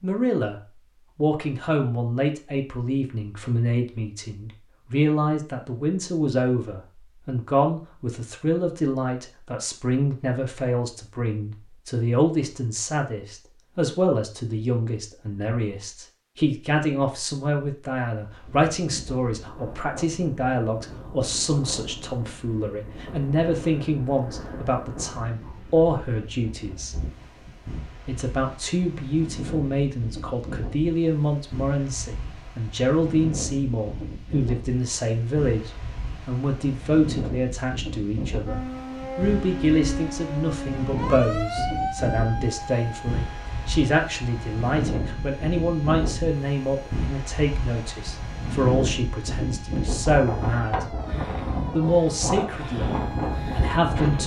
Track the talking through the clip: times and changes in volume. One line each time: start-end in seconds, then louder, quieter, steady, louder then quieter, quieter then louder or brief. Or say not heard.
0.0-26.9 steady
28.1-51.0 steady
51.8-54.2 brief.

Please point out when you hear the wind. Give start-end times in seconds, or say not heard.
18.2-54.2.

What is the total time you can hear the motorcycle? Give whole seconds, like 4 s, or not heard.
not heard.